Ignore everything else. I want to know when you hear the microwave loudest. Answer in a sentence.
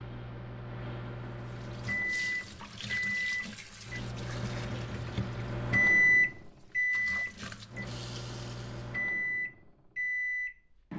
The loudest moment of the microwave is at 6 seconds.